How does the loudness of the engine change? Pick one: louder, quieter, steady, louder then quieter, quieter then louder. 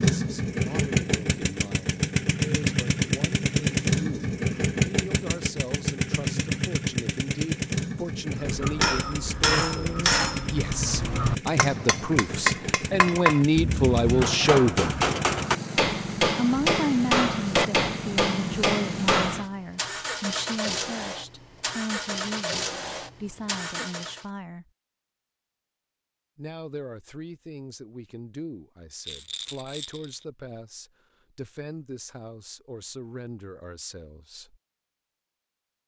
quieter.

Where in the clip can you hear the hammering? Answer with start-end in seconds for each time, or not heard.
8.3-19.4.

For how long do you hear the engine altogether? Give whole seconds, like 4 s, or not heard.
24 s.